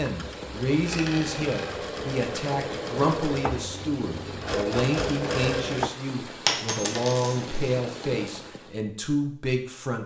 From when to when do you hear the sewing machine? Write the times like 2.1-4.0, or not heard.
0.0-5.9.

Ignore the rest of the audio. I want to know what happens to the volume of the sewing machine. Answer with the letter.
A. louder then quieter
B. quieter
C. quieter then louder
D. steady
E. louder
E.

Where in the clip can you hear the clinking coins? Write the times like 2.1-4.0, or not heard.
0.7-1.8, 6.5-7.6.